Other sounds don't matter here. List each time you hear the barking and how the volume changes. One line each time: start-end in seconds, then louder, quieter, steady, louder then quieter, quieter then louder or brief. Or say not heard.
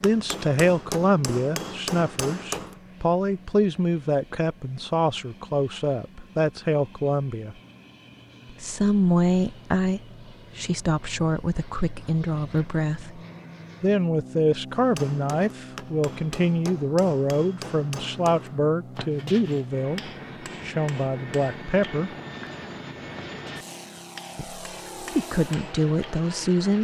not heard.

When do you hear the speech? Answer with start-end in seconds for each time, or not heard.
0.0-7.5, 8.6-13.2, 13.8-22.1, 24.4-26.8.